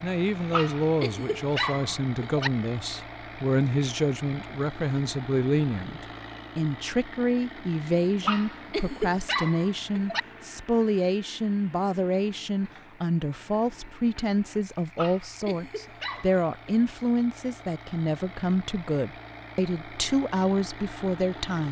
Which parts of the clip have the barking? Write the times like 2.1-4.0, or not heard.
0.5-2.5, 8.2-10.2, 14.9-16.9.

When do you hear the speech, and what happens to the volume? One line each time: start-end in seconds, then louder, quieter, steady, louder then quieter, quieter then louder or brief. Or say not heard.
0.0-21.6 steady.